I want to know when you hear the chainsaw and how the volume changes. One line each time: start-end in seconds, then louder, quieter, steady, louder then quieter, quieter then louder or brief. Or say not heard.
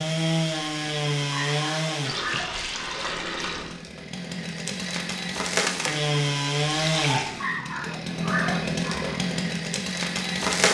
0.0-10.7 quieter then louder.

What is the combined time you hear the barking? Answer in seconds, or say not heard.
4 s.